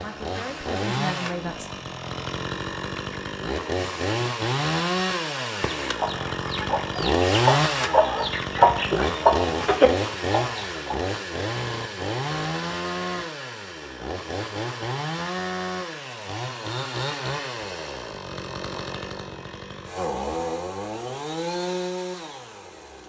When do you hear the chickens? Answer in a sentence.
You can hear the chickens from 5.5 to 10.9 s.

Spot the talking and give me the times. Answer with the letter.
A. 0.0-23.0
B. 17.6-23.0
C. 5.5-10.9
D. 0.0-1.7
D.